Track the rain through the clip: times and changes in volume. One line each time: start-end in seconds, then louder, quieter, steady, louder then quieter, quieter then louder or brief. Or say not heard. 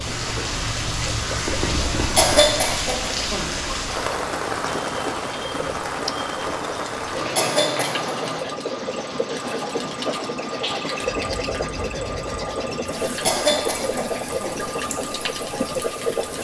0.0-16.4 quieter.